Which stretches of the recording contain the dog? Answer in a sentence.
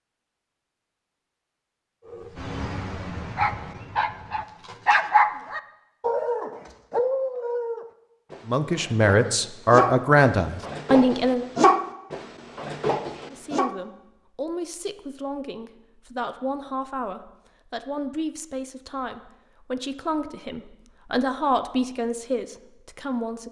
The dog can be heard from 2.1 to 13.7 s.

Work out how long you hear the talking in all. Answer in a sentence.
The talking can be heard for 13 seconds in total.